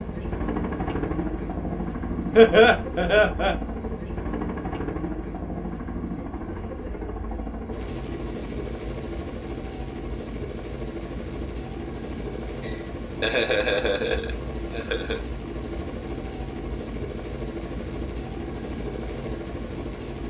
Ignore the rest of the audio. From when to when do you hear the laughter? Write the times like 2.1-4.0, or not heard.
2.4-3.5, 12.6-15.2.